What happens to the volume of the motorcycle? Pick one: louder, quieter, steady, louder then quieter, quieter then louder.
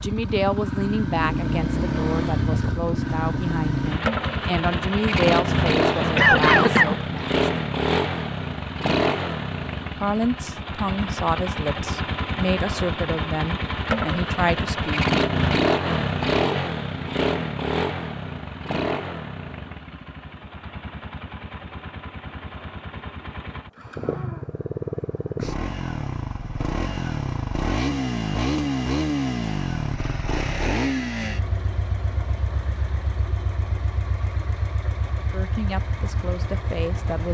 quieter.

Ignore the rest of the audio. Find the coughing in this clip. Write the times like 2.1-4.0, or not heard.
5.8-7.2.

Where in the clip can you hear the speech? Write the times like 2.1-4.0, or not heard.
0.0-7.5, 9.9-15.1, 35.3-37.3.